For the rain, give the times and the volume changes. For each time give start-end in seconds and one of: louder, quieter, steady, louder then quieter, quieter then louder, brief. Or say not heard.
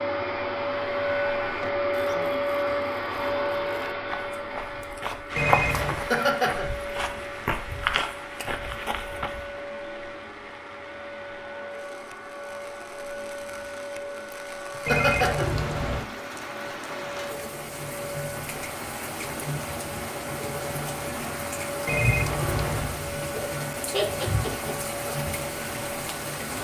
5.2-26.5 quieter then louder.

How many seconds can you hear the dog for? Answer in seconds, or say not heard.
not heard.